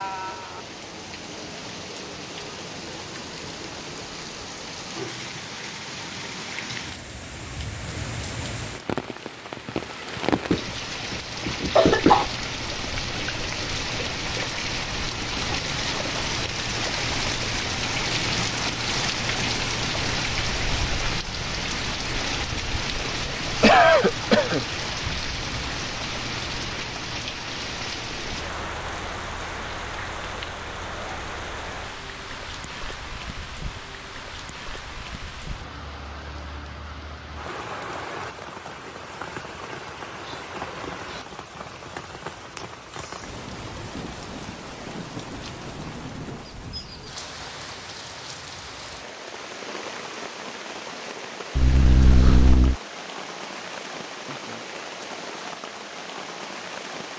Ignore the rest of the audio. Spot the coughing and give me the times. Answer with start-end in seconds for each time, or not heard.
10.3-12.2, 22.9-24.6, 51.5-52.8.